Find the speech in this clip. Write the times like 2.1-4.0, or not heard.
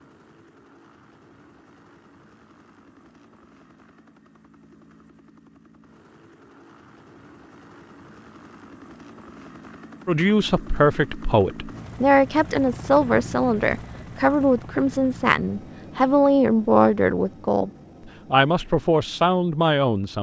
10.1-17.7, 18.3-20.1.